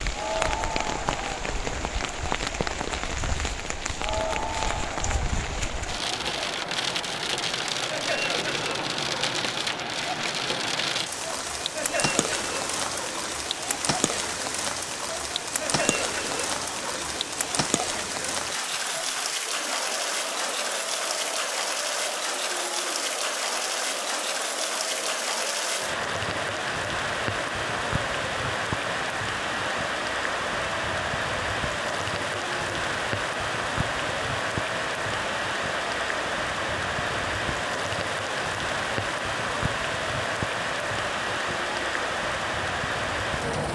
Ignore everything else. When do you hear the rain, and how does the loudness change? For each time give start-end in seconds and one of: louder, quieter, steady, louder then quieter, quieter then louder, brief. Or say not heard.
0.0-43.7 steady.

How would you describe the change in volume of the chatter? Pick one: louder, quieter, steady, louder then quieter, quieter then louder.
steady.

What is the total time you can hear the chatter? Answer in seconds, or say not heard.
44 s.